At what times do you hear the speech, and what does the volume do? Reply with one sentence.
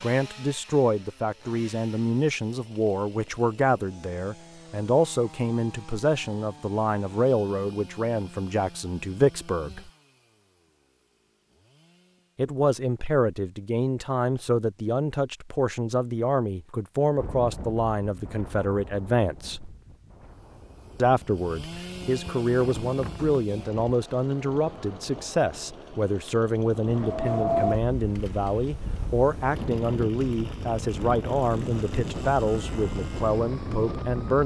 You can hear the speech from 0.0 to 9.9 s, at a steady volume; from 12.3 to 19.8 s, at a steady volume; and from 20.9 to 34.4 s, at a steady volume.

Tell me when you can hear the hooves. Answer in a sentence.
The hooves can't be heard in this clip.